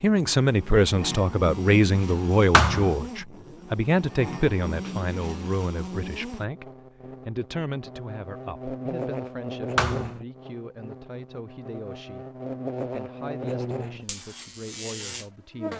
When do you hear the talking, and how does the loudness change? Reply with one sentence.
You can hear the talking from 0.0 to 15.7 s, getting quieter.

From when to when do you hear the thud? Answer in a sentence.
The thud can be heard from 2.5 to 3.0 s and from 9.8 to 10.2 s.